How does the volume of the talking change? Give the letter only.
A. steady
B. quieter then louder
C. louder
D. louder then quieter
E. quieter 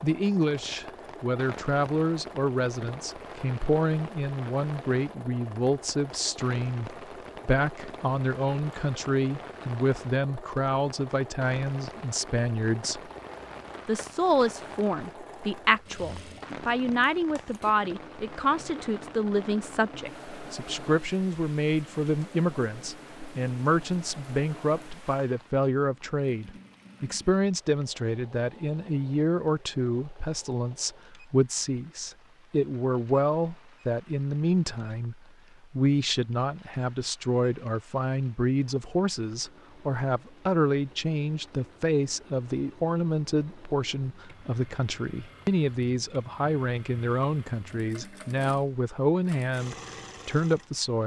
A.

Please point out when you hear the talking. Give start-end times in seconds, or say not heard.
0.0-13.0, 13.8-51.0.